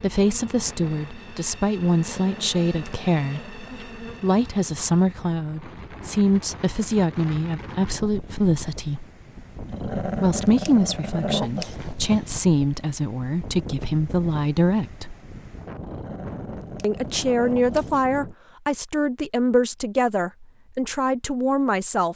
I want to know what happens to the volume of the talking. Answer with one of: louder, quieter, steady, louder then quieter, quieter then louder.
steady.